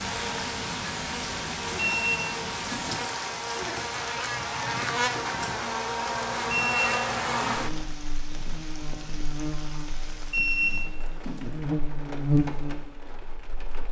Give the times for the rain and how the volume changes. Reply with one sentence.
You can hear the rain from 0.0 to 13.8 s, getting quieter.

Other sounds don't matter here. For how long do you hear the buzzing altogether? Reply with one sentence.
The buzzing can be heard for 14 seconds in total.